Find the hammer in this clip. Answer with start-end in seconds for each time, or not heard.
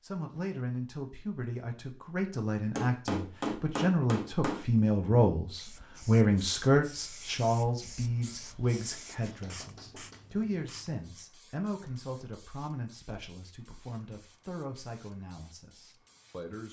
2.8-4.7, 8.7-10.3.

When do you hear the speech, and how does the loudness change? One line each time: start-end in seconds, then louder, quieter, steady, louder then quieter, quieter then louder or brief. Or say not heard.
0.0-16.6 louder then quieter.